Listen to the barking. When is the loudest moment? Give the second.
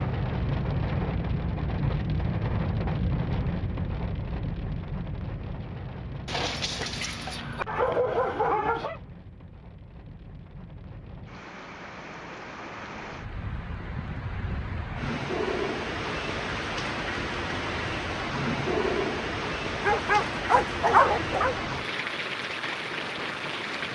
21 s.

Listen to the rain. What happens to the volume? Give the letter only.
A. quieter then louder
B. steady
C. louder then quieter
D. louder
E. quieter
A.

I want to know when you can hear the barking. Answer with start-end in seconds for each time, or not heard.
6.2-9.0, 19.8-21.6.